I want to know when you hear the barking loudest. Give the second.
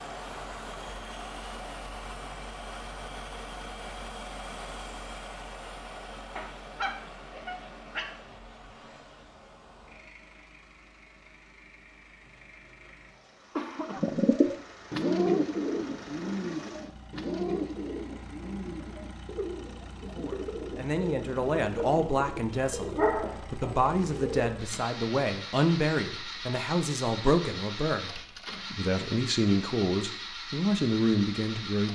23 s.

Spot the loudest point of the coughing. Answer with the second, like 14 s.
14 s.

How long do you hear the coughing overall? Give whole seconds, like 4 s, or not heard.
2 s.